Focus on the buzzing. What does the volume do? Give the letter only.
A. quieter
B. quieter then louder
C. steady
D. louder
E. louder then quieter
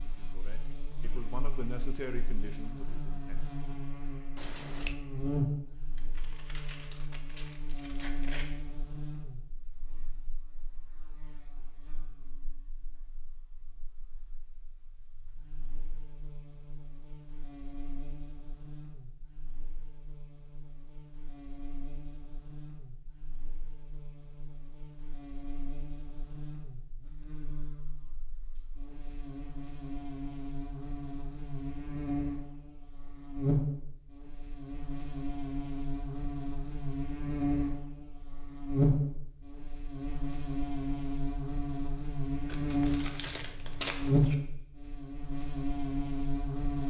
B.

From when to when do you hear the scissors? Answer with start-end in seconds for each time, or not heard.
4.3-5.0.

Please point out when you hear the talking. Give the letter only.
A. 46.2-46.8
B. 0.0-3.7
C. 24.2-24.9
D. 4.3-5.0
B.